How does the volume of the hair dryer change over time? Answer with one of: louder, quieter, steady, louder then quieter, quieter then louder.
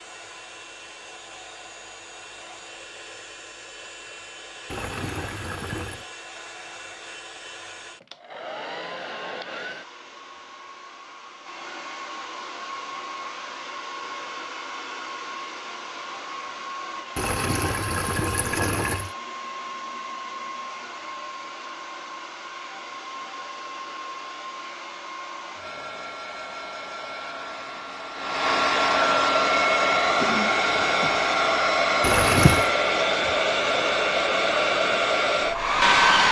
louder.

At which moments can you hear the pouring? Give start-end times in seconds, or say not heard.
4.7-6.0, 17.1-19.1, 32.0-32.7.